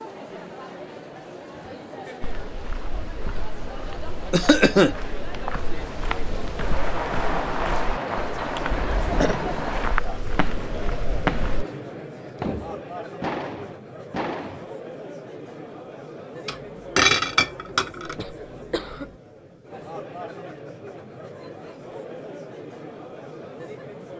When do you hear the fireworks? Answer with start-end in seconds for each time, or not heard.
6.6-14.7.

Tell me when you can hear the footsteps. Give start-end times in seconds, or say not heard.
2.2-11.7.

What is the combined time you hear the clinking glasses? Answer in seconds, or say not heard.
2 s.